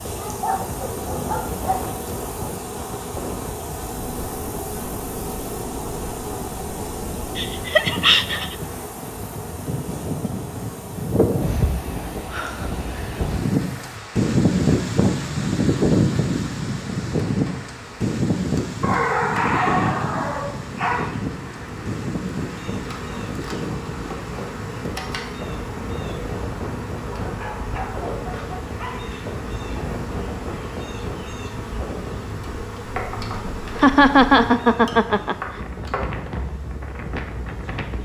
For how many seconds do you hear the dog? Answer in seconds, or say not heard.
6 s.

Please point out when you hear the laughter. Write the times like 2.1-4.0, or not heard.
7.3-8.6, 33.8-35.4.